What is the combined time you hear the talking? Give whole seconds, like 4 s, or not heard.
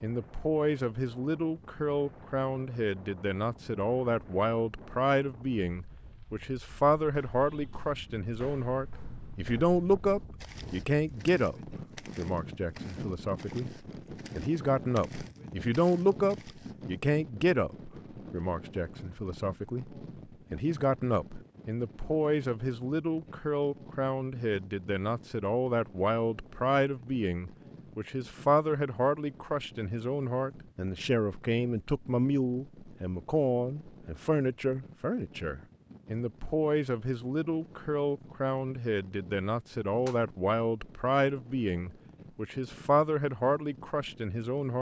45 s.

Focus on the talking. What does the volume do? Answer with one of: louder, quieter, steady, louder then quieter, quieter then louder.
steady.